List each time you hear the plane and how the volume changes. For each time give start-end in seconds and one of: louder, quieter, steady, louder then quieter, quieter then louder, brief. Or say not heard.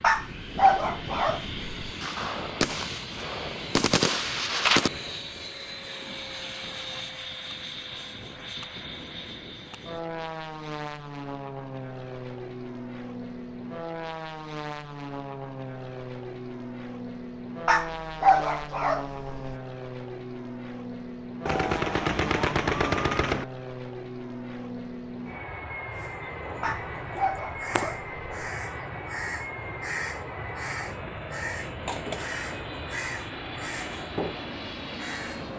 0.0-35.5 steady.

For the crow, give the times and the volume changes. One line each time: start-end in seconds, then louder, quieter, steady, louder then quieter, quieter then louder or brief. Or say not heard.
25.9-35.5 steady.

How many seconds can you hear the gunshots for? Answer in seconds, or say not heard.
5 s.